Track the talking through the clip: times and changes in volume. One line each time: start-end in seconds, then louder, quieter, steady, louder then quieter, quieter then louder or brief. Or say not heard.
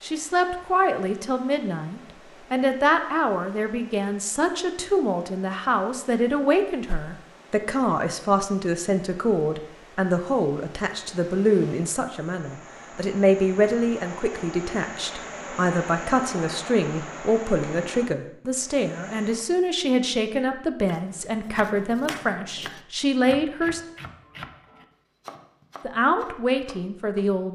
0.0-23.8 steady
25.8-27.5 brief.